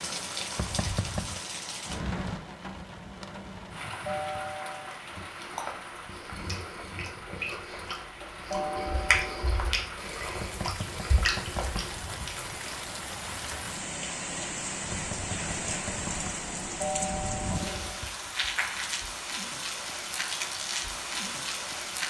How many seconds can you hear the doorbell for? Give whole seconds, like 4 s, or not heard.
3 s.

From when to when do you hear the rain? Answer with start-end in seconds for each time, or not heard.
0.0-22.0.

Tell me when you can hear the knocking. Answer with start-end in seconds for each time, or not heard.
0.6-1.4, 10.4-12.3, 14.9-16.4.